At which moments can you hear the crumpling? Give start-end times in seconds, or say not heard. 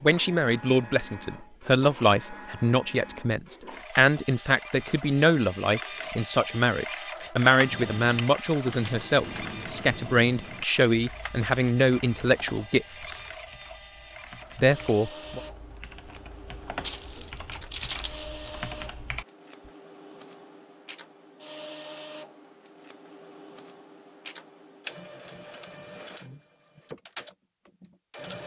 16.8-18.6.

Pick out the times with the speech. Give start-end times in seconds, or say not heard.
0.0-13.2, 14.6-15.4.